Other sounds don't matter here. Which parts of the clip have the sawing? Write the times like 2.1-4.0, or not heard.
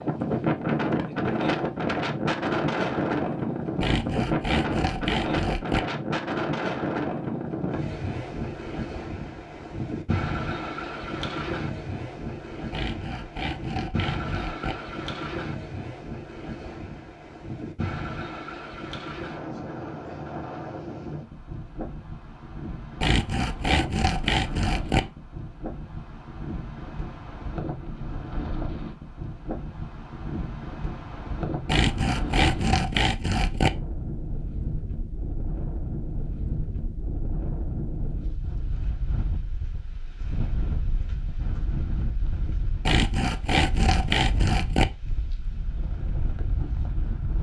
3.8-5.8, 12.7-14.8, 23.0-25.0, 31.6-33.7, 42.9-44.9.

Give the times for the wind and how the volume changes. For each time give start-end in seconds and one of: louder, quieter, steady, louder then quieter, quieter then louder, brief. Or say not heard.
0.0-47.3 quieter.